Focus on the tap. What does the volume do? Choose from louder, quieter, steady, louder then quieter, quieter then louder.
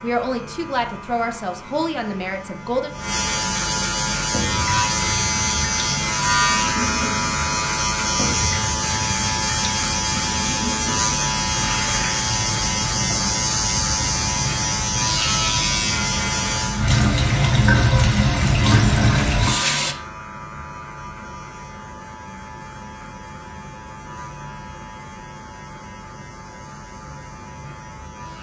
louder.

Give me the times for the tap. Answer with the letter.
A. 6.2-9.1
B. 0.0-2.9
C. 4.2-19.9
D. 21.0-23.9
C.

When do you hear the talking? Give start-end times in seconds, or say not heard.
0.0-2.9.